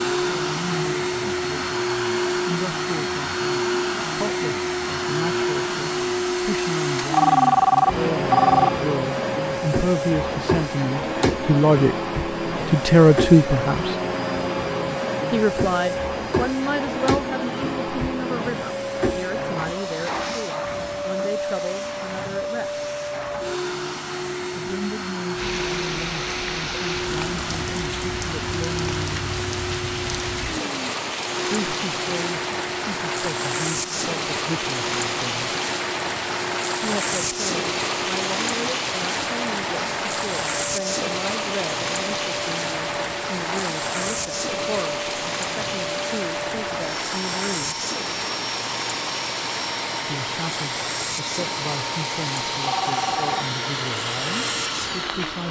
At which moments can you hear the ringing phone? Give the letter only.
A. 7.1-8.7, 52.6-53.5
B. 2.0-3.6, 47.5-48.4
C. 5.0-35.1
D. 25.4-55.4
A.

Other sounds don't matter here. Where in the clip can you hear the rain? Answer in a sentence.
The rain can be heard from 25.4 to 55.4 s.